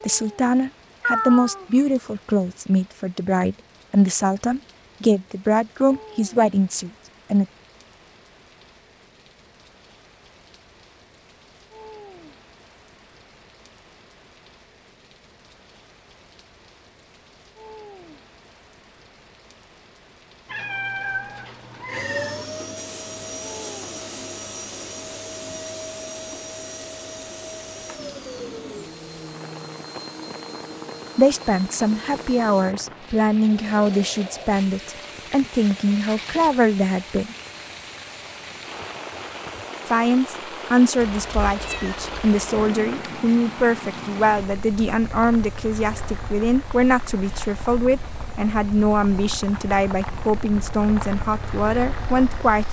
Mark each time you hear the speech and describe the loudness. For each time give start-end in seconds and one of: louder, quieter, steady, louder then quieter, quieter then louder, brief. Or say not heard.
0.0-7.5 steady
31.1-37.4 steady
39.9-52.6 steady.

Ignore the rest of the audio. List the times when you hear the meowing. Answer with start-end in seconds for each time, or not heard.
1.0-1.9, 20.4-22.4, 41.0-42.7.